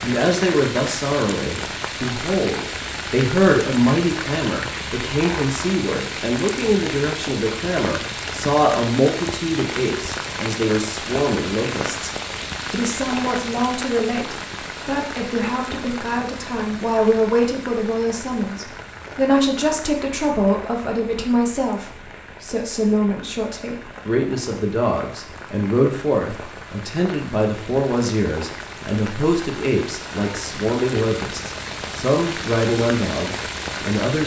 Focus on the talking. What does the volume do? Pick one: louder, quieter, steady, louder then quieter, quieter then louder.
steady.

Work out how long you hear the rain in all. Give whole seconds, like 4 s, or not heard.
34 s.